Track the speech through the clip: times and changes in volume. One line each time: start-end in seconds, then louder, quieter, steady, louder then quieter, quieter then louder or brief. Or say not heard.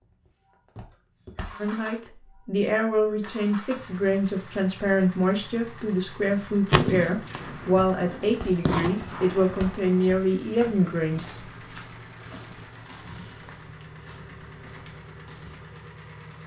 1.6-11.4 steady.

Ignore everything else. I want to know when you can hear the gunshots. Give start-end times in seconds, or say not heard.
6.2-10.2.